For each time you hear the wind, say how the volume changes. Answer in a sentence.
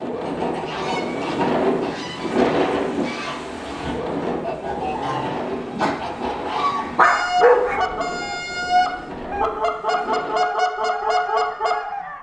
You can hear the wind from 0.0 to 10.3 s, getting quieter.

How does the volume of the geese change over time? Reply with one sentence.
The volume of the geese goes up.